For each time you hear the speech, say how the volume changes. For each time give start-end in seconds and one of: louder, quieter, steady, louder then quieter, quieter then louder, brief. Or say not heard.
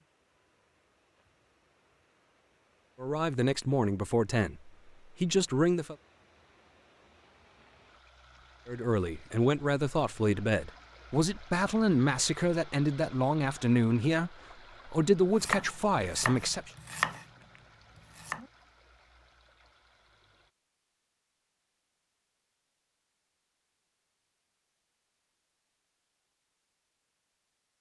3.0-6.0 brief
8.7-16.7 steady.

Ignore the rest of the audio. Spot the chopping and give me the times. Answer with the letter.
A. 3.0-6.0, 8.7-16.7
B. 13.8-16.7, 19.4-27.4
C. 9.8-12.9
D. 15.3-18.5
D.